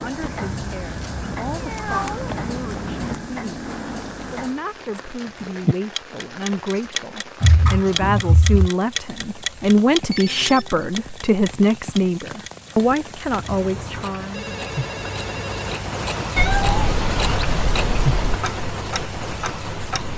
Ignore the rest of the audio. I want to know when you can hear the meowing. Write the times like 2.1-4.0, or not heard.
1.1-3.1, 7.4-8.7, 16.4-18.4.